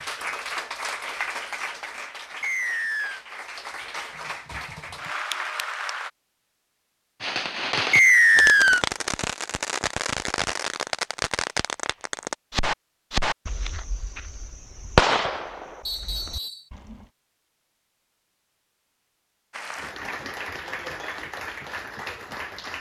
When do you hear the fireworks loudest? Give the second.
15 s.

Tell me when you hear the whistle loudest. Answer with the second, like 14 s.
8 s.